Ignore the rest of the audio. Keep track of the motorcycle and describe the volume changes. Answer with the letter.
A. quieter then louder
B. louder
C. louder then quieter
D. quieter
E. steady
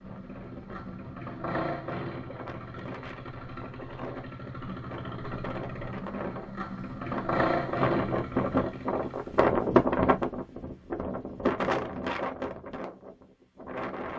A.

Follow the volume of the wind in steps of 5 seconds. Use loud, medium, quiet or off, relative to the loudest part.
quiet, loud, loud.